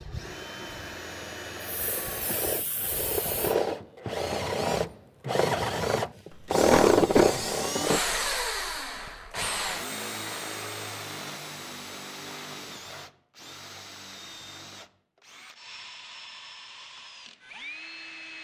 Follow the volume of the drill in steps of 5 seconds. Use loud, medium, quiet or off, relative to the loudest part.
medium, loud, quiet, quiet.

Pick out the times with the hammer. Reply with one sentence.
The hammer can't be heard in this clip.